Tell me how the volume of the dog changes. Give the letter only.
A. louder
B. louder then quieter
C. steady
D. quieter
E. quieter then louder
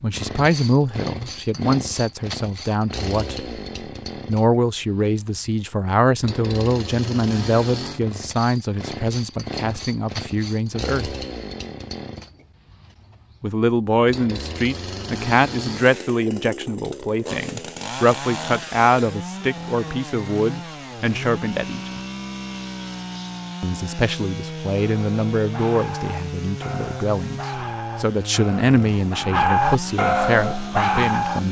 A.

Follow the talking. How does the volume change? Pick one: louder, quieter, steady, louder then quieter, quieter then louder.
steady.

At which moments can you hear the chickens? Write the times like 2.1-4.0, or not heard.
not heard.